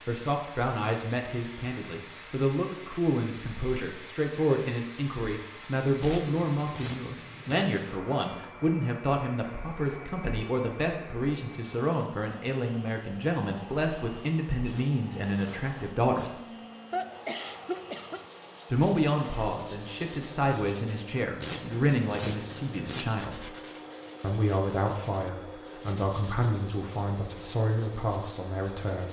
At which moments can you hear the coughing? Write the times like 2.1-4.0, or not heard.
16.9-18.2.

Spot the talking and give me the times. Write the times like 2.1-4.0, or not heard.
0.1-16.4, 18.7-23.5, 24.2-29.0.